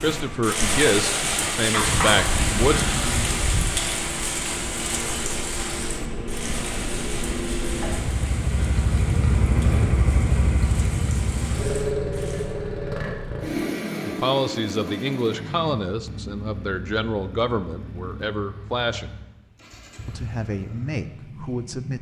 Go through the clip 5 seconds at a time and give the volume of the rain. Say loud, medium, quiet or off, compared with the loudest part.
loud, medium, quiet, off, off.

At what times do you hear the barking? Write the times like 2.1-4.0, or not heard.
1.7-3.8.